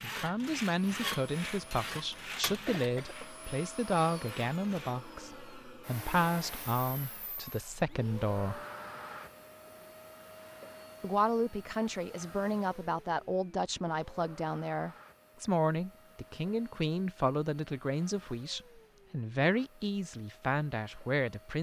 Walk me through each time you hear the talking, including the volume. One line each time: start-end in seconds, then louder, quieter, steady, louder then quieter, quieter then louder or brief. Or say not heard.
0.0-8.6 steady
11.0-21.5 steady.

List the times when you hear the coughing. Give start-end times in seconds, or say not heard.
2.5-3.1.